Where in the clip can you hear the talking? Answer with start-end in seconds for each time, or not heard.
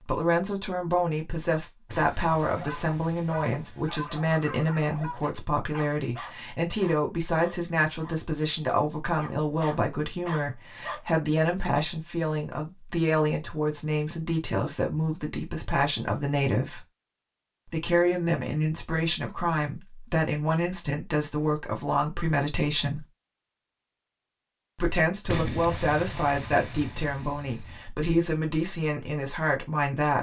0.0-16.8, 17.7-23.1, 24.8-30.1.